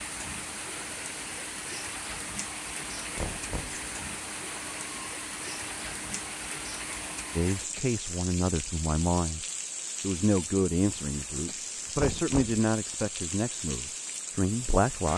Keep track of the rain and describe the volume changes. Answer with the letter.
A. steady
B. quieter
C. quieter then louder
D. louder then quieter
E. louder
A.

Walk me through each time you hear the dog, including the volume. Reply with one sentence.
The dog can't be heard in this clip.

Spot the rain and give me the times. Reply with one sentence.
The rain can be heard from 0.0 to 15.1 s.